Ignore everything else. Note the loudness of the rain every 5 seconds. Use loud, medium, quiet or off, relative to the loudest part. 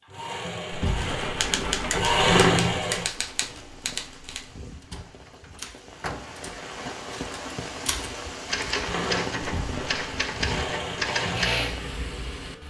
medium, loud, loud.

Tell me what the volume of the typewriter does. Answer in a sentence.
The volume of the typewriter goes down, then up.